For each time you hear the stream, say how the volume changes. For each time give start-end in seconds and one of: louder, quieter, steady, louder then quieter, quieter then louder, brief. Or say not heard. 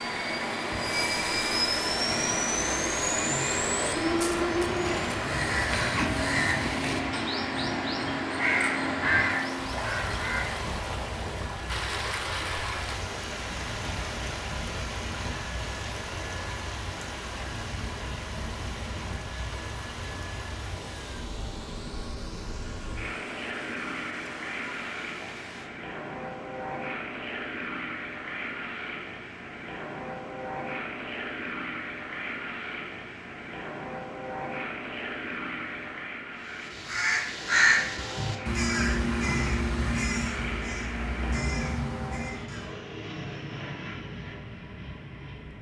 0.0-25.7 quieter.